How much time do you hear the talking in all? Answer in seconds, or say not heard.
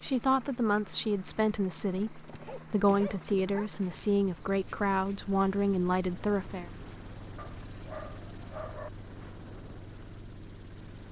7 s.